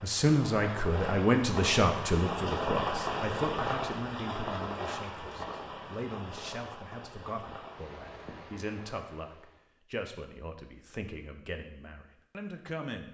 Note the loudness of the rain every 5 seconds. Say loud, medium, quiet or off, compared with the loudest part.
loud, medium, off.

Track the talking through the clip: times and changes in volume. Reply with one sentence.
You can hear the talking from 0.0 to 13.1 s, getting quieter.